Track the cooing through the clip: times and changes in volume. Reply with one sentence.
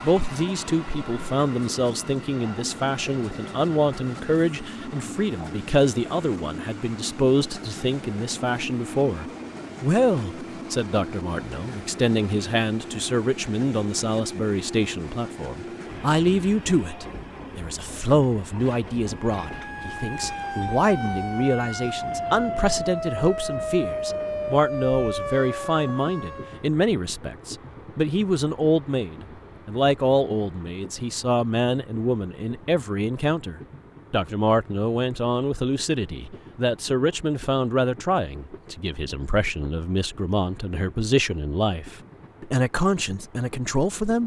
The cooing can't be heard in this clip.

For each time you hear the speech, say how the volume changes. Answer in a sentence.
You can hear the speech from 0.0 to 44.2 s, at a steady volume.